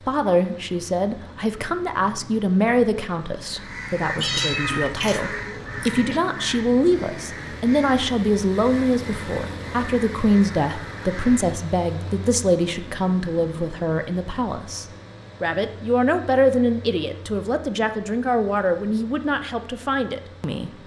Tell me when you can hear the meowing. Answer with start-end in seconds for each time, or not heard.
4.2-6.2.